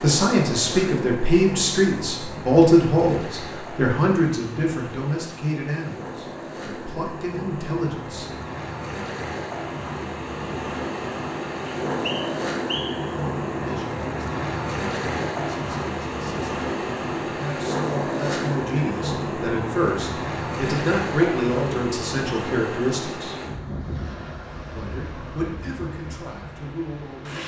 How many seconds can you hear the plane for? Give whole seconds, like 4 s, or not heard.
not heard.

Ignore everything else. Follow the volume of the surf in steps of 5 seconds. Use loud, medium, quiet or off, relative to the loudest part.
medium, medium, loud, loud, loud, medium.